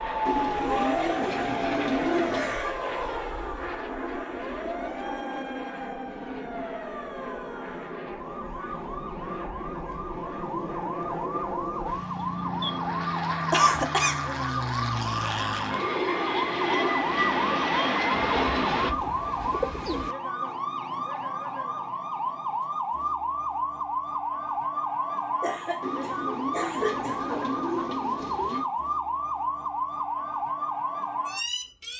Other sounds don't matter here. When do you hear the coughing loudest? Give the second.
14 s.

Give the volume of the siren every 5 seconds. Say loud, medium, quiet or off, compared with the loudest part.
medium, medium, loud, loud, loud, loud, loud.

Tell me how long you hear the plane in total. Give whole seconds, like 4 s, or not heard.
19 s.